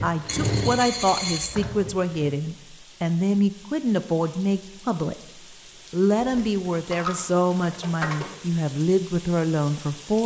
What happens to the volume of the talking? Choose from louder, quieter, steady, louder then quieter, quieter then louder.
steady.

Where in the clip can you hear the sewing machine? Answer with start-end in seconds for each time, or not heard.
0.0-2.4.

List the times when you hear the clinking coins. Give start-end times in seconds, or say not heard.
0.2-1.6, 6.2-8.3.